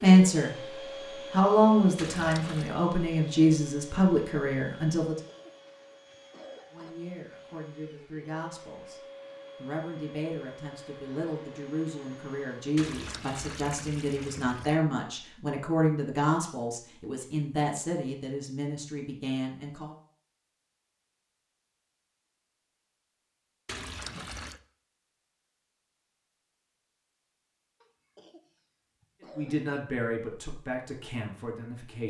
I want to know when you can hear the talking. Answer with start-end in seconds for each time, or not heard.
0.0-0.6, 1.3-5.2, 6.7-19.9, 29.2-32.0.